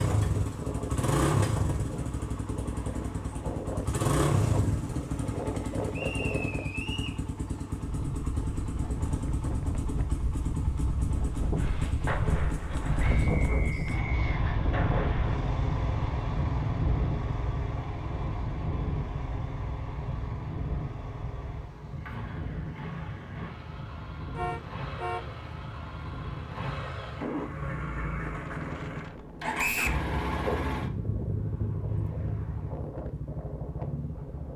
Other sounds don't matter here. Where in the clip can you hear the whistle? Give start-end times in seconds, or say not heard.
5.9-7.2, 13.2-14.4, 29.6-30.0.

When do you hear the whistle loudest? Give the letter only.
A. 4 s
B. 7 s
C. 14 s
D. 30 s
D.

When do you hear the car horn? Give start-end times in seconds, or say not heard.
24.4-25.4.